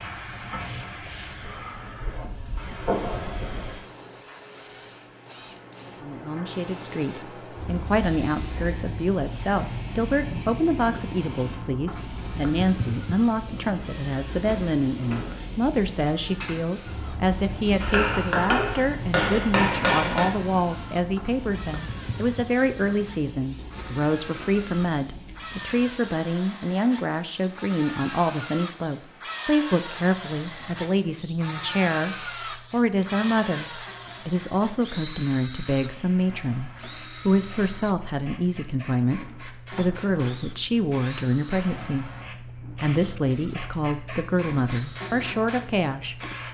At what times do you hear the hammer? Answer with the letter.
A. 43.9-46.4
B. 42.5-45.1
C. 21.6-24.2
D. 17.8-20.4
D.